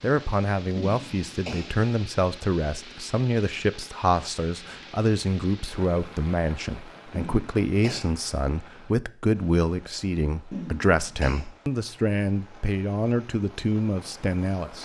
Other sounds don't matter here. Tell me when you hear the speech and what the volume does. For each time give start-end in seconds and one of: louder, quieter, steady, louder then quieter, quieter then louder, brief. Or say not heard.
0.0-14.7 steady.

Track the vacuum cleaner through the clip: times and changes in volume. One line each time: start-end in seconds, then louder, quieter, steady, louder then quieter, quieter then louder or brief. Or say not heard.
not heard.